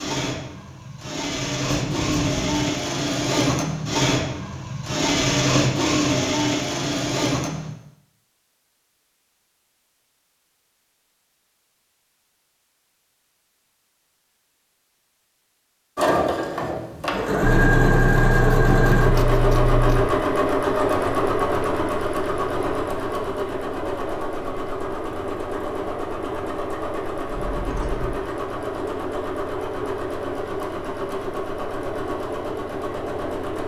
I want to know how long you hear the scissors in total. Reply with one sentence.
You can hear the scissors for 5 seconds altogether.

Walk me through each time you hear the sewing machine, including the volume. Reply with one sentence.
The sewing machine can be heard from 0.0 to 7.8 s, getting louder; and from 15.9 to 33.6 s, getting quieter.